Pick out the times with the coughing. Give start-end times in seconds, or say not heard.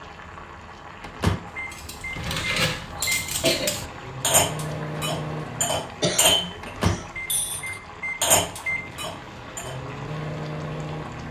2.9-3.7, 6.0-7.0.